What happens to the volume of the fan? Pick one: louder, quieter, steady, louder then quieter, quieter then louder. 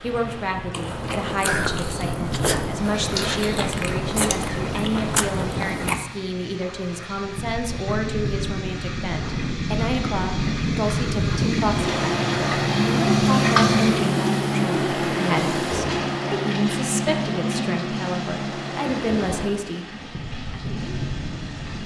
louder then quieter.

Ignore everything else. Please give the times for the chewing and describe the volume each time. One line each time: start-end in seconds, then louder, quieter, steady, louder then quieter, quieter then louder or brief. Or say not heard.
0.7-6.0 steady.